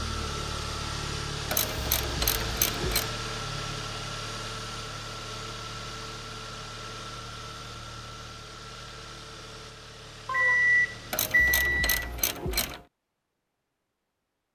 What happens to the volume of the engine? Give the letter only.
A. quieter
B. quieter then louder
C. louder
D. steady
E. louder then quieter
A.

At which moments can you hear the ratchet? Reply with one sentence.
The ratchet can be heard from 1.5 to 3.1 s and from 11.1 to 12.8 s.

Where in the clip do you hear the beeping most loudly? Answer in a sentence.
The volume of the beeping peaks at 11 seconds.